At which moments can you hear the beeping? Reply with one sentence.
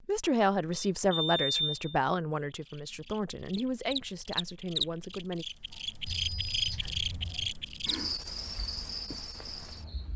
The beeping can be heard from 0.7 to 1.9 s and from 6.0 to 7.5 s.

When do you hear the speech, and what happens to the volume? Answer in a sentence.
The speech can be heard from 0.0 to 5.5 s, getting quieter.